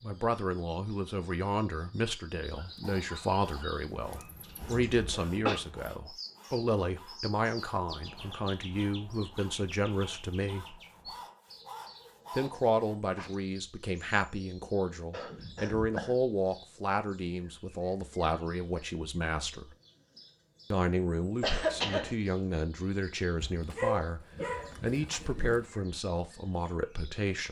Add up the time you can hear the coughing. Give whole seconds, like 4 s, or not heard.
3 s.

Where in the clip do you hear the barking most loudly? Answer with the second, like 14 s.
24 s.